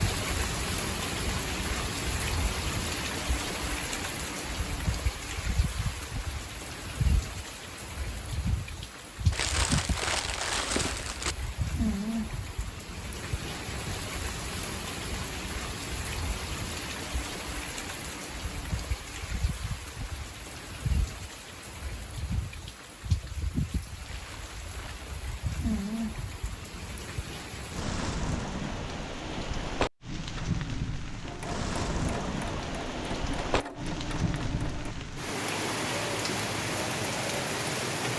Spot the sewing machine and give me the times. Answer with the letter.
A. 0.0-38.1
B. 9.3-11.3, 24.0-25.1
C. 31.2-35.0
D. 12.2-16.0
C.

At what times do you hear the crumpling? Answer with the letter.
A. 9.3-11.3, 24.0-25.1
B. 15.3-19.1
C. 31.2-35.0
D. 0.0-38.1
A.